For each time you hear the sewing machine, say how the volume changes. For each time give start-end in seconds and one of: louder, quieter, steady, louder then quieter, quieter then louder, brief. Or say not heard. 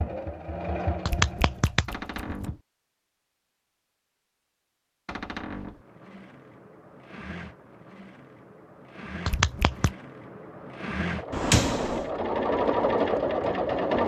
0.0-1.8 brief
5.5-14.0 louder.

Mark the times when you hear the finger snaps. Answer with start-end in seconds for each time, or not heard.
1.1-2.5, 9.2-9.9.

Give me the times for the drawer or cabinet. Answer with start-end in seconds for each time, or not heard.
1.9-2.6, 5.0-5.8, 11.3-12.1.